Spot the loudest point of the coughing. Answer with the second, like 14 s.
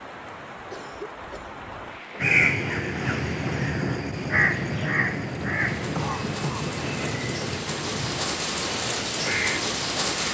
6 s.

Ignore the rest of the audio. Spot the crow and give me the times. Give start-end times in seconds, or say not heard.
2.2-10.2.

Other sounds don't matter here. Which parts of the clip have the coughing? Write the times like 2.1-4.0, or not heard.
0.7-1.6, 6.0-6.7.